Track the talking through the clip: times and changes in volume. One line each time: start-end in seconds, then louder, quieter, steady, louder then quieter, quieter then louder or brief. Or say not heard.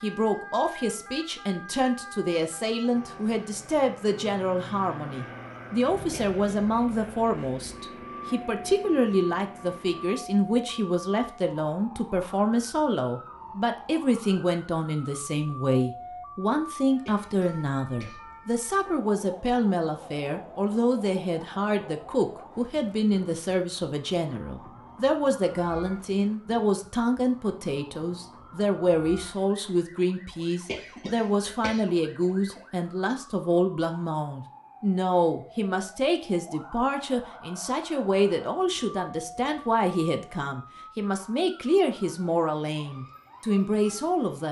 0.0-44.4 steady.